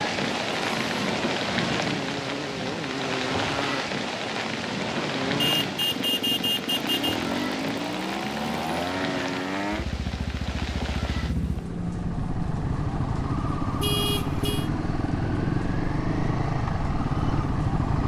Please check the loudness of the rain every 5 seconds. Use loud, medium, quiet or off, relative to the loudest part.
loud, loud, medium, medium.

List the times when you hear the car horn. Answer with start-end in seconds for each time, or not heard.
5.3-7.2, 13.8-14.7.